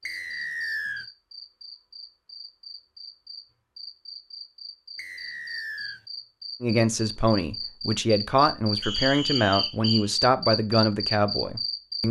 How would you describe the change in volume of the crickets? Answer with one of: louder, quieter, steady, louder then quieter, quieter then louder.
louder.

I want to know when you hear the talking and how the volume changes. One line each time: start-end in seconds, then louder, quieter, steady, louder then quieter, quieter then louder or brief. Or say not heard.
6.6-12.0 steady.